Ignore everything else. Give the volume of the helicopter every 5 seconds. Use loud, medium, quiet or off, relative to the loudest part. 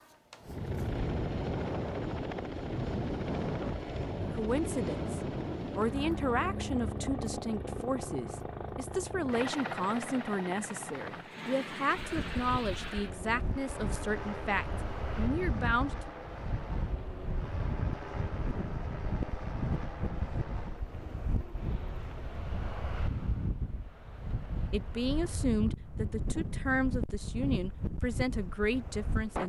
loud, loud, medium, medium, quiet, off.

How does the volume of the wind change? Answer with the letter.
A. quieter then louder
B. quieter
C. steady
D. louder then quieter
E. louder
C.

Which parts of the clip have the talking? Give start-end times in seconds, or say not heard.
4.2-16.1, 24.7-29.4.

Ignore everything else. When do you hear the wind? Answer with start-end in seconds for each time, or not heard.
11.9-29.4.